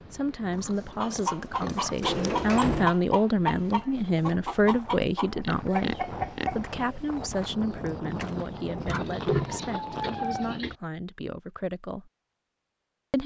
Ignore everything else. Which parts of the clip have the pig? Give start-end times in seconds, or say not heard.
0.5-2.2, 5.4-6.5, 8.8-10.8.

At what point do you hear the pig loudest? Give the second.
9 s.